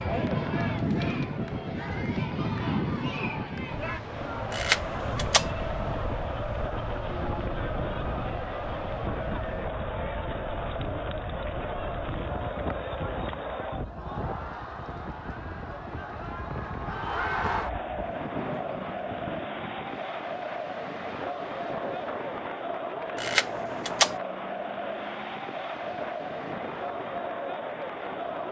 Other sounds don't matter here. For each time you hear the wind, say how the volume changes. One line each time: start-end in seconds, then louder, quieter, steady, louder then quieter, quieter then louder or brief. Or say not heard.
0.0-28.4 quieter.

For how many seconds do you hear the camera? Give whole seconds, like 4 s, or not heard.
2 s.